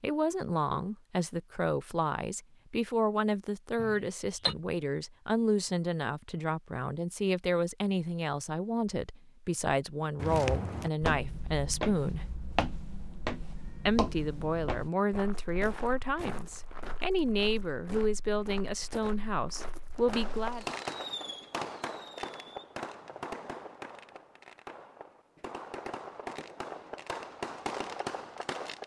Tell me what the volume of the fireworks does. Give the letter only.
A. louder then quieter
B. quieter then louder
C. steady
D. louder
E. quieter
B.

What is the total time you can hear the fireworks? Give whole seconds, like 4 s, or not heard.
9 s.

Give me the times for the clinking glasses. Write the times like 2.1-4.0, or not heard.
3.8-4.5.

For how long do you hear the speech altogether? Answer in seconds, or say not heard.
19 s.